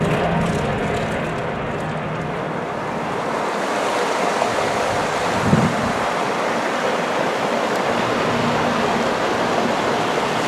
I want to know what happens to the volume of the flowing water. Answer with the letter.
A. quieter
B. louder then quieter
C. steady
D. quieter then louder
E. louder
E.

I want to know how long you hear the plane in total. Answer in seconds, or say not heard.
6 s.